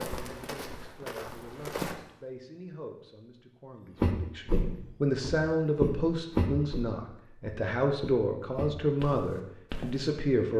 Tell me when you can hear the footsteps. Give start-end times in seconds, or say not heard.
0.0-1.9, 4.0-10.1.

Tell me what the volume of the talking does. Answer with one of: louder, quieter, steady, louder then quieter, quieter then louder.
louder.